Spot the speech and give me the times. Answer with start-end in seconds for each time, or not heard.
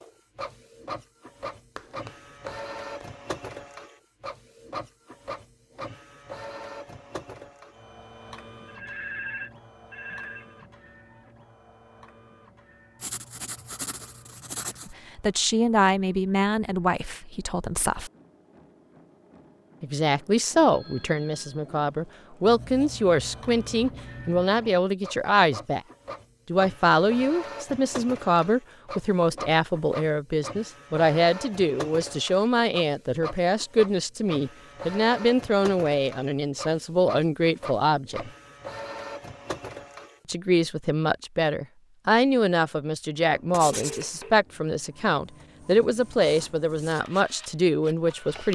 14.8-18.1, 19.8-25.8, 26.4-38.3, 40.2-48.5.